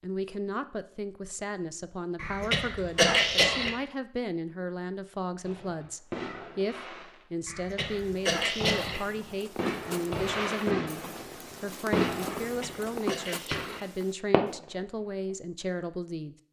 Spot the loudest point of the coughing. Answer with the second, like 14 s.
3 s.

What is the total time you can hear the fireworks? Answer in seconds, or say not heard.
9 s.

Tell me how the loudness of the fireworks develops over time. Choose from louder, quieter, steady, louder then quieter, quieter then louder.
louder.